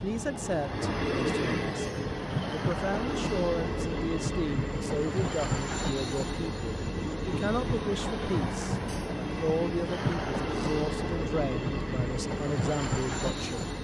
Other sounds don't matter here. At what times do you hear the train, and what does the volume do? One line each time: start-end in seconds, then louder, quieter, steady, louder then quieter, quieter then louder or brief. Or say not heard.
0.0-13.7 steady.